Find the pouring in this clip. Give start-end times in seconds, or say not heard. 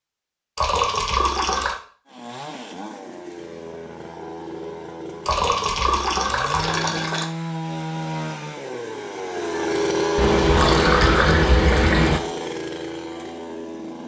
0.6-1.8, 5.2-7.2, 10.2-12.2.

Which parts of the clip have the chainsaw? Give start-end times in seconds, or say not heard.
2.0-14.0.